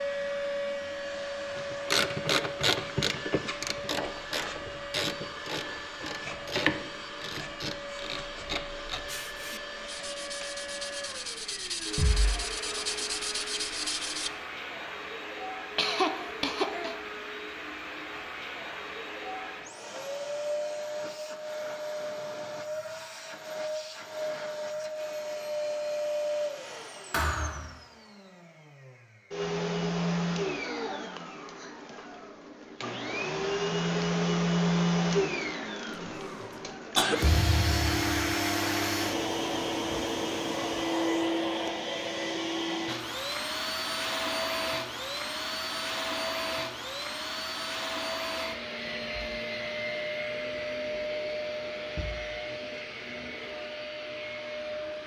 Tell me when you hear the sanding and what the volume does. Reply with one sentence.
You can hear the sanding from 9.1 to 14.3 s, getting louder.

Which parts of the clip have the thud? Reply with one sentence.
You can hear the thud from 11.9 to 12.3 s, from 27.1 to 27.7 s and from 37.2 to 38.4 s.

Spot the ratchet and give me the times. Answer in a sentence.
The ratchet can be heard from 1.6 to 9.1 s.